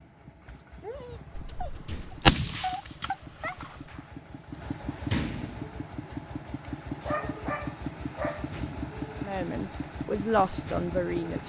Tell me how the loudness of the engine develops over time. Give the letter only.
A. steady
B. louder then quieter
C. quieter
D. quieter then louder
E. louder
E.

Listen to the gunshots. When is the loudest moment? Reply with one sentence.
The volume of the gunshots peaks at 2 seconds.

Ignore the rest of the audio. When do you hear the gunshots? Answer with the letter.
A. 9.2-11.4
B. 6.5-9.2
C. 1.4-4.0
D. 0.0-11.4
C.